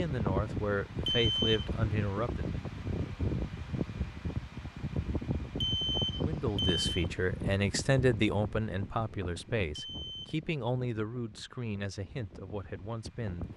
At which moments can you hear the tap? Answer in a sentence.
The tap can't be heard in this clip.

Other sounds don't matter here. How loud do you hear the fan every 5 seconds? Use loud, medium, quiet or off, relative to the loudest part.
loud, loud, quiet.